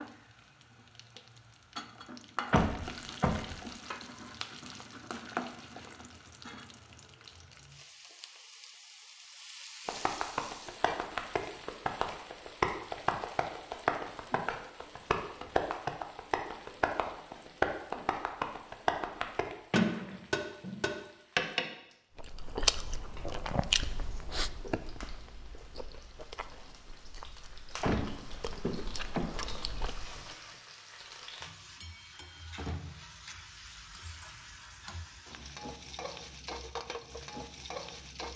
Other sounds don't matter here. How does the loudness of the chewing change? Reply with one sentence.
The loudness of the chewing goes down, then up.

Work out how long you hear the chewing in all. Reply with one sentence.
The chewing can be heard for 8 seconds in total.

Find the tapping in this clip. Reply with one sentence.
The tapping can be heard from 9.8 to 21.6 s.